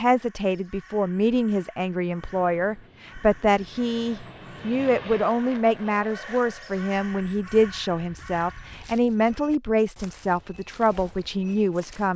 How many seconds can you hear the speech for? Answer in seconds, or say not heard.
12 s.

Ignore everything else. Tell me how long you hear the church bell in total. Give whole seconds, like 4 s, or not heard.
not heard.